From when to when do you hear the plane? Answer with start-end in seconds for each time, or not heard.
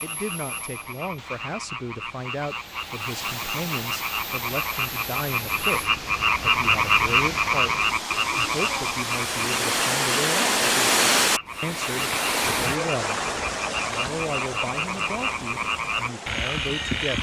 0.0-5.9.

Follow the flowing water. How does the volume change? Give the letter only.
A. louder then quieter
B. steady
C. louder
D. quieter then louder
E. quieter
A.